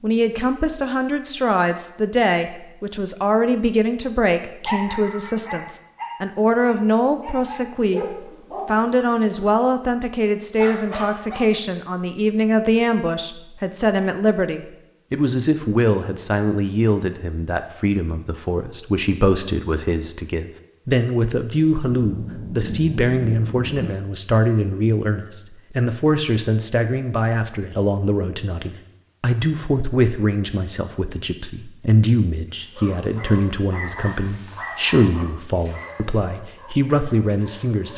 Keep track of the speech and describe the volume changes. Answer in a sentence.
The loudness of the speech stays about the same.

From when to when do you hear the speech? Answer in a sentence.
You can hear the speech from 0.0 to 37.9 s.